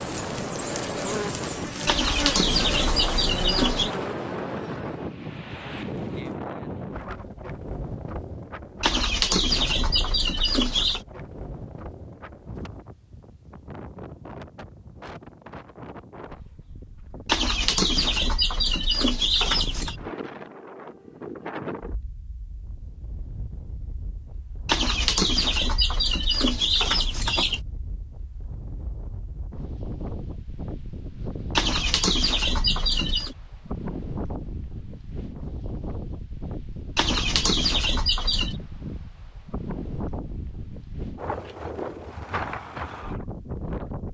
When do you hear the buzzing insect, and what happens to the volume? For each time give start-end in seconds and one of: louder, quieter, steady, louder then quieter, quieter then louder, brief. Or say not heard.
0.0-6.4 quieter.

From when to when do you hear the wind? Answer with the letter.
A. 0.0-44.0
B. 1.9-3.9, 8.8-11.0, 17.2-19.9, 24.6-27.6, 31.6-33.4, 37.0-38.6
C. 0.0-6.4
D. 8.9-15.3
A.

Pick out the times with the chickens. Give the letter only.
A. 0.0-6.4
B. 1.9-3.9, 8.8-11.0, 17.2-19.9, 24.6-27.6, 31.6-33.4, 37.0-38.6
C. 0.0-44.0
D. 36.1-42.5
B.